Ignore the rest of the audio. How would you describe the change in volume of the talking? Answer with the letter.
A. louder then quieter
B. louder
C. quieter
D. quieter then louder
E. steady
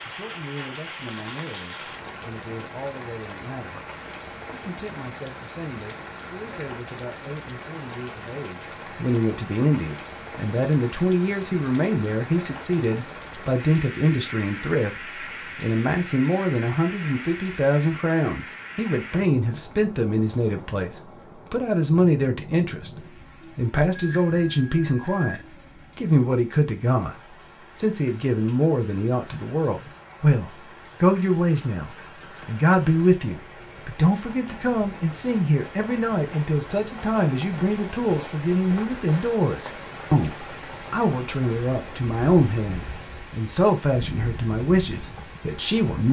B.